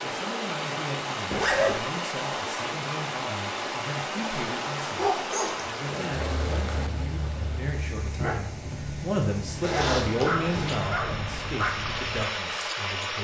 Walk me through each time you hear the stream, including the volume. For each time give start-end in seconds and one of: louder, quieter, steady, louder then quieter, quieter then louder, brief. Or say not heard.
0.0-13.2 quieter then louder.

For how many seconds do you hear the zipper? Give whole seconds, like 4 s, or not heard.
2 s.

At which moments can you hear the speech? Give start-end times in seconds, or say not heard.
0.0-13.2.